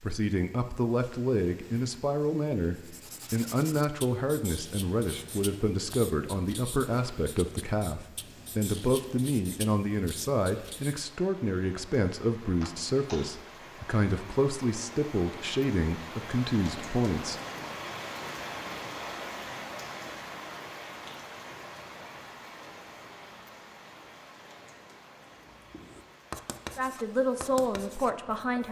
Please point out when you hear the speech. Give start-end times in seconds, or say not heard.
0.0-17.4, 26.8-28.6.